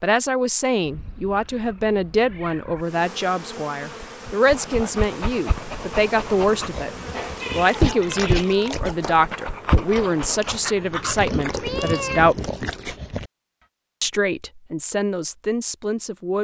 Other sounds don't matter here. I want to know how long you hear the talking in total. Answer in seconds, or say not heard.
14 s.